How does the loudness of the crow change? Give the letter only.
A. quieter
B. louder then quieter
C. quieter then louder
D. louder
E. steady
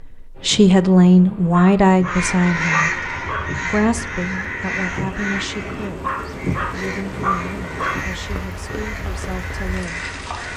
A.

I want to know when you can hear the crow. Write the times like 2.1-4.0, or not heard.
2.0-10.5.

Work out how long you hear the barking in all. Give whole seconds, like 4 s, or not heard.
4 s.